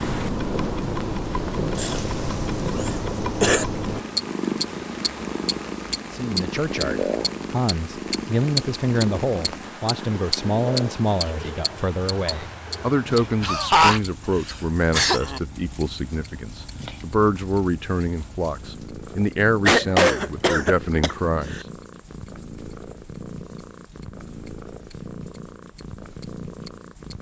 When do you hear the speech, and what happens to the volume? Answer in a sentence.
The speech can be heard from 6.1 to 21.6 s, at a steady volume.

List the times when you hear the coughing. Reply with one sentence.
You can hear the coughing from 1.8 to 3.6 s, from 13.4 to 15.4 s and from 19.6 to 21.6 s.